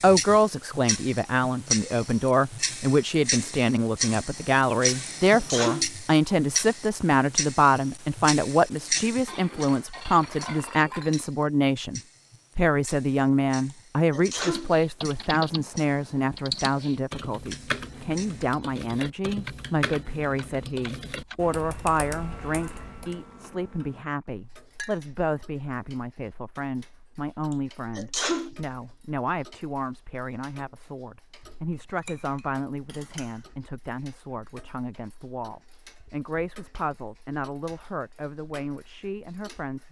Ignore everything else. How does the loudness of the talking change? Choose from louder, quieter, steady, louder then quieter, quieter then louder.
quieter.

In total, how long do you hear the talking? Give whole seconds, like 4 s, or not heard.
40 s.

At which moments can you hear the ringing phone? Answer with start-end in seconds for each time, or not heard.
not heard.